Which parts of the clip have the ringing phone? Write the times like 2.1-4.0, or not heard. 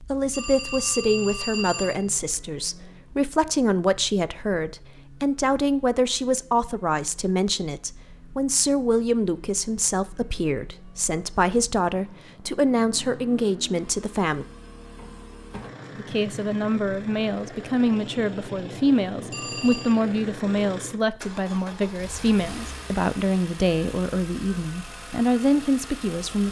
0.3-2.0, 19.3-19.9.